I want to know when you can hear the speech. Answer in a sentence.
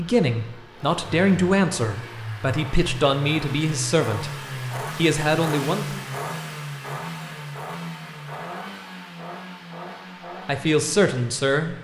You can hear the speech from 0.0 to 4.3 s, from 5.0 to 6.0 s and from 10.4 to 11.7 s.